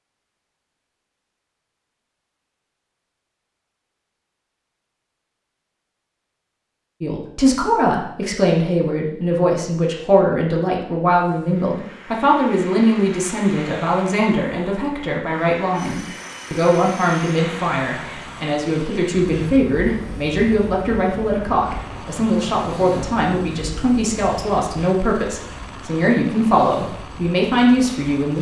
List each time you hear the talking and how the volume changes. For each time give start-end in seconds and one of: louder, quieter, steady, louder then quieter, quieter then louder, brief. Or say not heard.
7.0-28.3 steady.